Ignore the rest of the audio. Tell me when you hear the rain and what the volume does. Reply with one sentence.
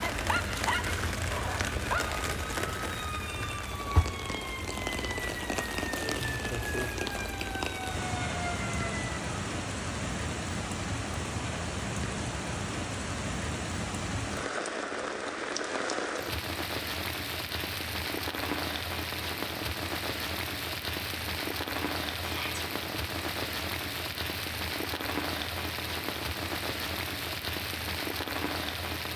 The rain can be heard from 0.0 to 29.1 s, at a steady volume.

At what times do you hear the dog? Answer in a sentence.
The dog can be heard from 0.0 to 2.3 s.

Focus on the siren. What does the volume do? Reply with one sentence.
The loudness of the siren stays about the same.